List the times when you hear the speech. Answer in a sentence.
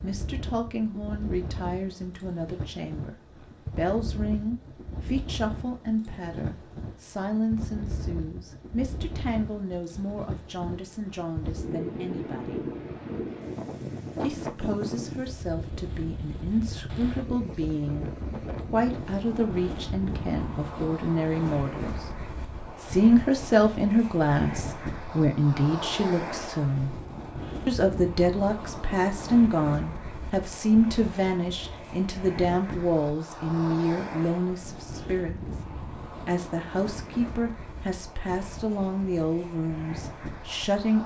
You can hear the speech from 0.0 to 3.1 s, from 3.8 to 12.7 s, from 14.2 to 22.1 s, from 22.8 to 26.9 s, from 27.6 to 35.4 s and from 36.2 to 41.0 s.